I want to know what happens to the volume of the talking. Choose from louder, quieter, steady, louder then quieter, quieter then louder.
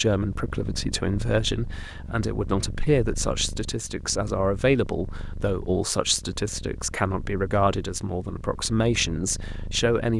steady.